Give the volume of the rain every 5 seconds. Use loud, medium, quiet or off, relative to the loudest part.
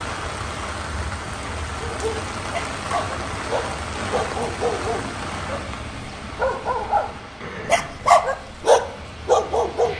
loud, medium.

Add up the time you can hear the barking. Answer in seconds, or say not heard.
8 s.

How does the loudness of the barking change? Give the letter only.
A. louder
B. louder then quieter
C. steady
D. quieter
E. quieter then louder
A.